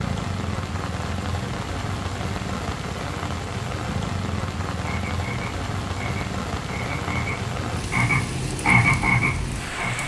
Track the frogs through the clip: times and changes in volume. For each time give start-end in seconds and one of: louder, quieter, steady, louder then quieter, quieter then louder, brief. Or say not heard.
4.8-10.0 louder.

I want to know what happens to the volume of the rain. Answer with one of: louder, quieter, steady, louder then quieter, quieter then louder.
steady.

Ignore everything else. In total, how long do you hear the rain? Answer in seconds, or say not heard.
10 s.